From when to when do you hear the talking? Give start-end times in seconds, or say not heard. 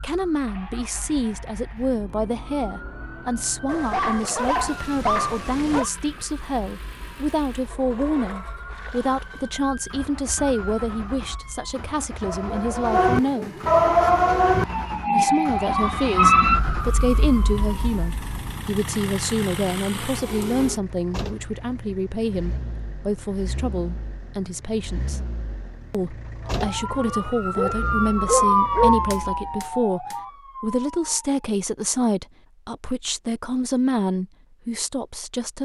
0.0-13.6, 15.1-25.2, 25.9-35.5.